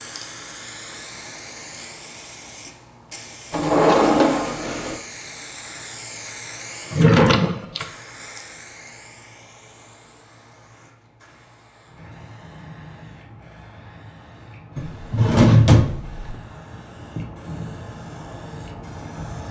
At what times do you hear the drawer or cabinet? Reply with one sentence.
You can hear the drawer or cabinet from 3.5 to 5.0 s, from 6.9 to 7.8 s and from 14.8 to 16.4 s.